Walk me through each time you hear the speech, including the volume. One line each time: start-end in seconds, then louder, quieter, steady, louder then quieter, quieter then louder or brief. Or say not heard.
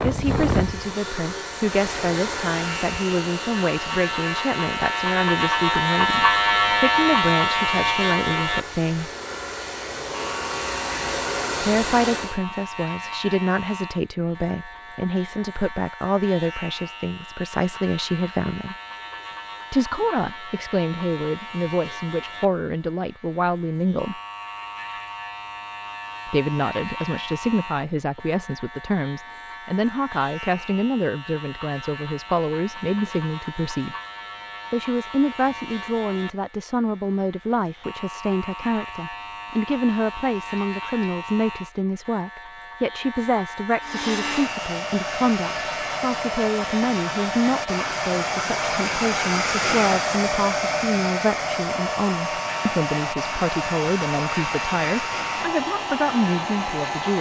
0.0-9.1 steady
11.6-18.8 steady
19.7-24.2 steady
26.2-34.0 steady
34.7-57.1 steady.